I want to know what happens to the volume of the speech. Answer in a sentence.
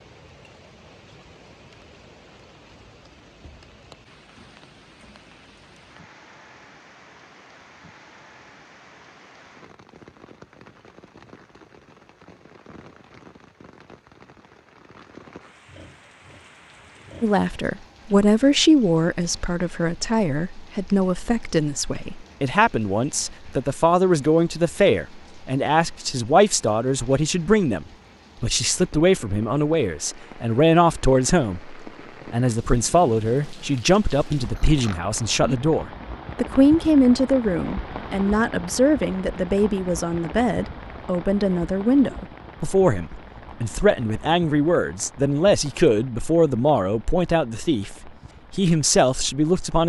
The loudness of the speech stays about the same.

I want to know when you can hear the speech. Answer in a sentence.
The speech can be heard from 17.2 to 49.8 s.